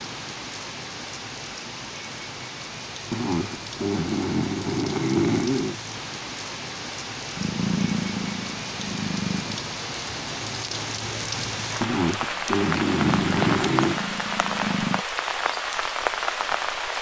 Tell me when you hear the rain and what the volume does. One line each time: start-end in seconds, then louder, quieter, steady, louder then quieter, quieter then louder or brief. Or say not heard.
0.0-16.9 louder.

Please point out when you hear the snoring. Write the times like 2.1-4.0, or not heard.
3.1-5.8, 11.8-14.0.